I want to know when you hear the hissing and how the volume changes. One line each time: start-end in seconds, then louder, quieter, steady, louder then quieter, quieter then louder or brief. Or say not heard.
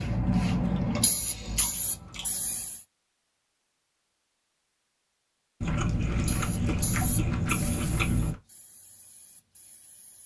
0.0-2.9 brief
6.1-10.2 quieter.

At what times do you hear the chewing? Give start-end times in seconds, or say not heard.
0.2-2.2, 5.6-8.4.